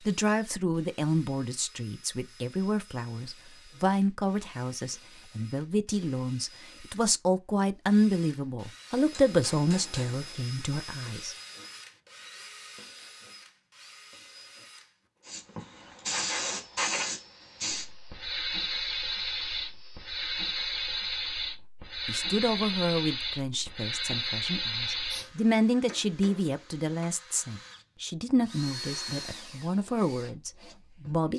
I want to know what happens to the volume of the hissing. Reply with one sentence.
The volume of the hissing stays about the same.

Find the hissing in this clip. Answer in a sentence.
You can hear the hissing from 15.2 to 25.3 s.